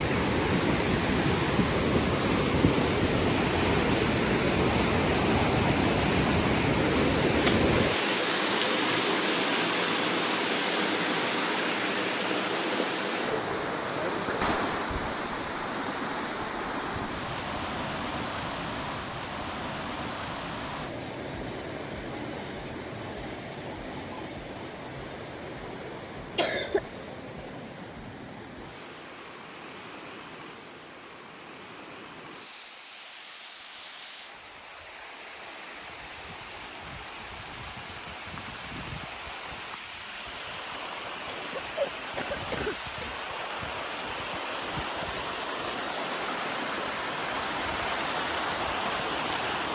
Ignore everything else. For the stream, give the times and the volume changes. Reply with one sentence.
The stream can be heard from 0.0 to 49.7 s, getting quieter then louder.